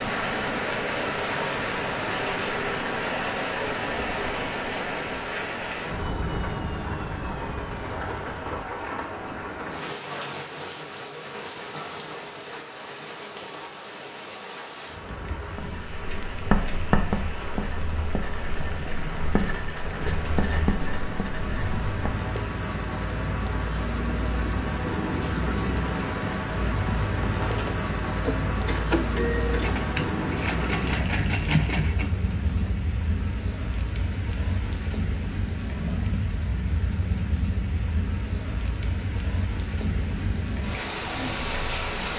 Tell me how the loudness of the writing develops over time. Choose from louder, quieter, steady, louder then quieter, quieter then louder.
quieter then louder.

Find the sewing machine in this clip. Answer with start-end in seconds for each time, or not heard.
27.2-32.7.